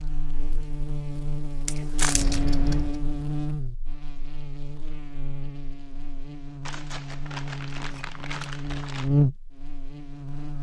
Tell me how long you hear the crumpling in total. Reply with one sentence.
You can hear the crumpling for 3 seconds altogether.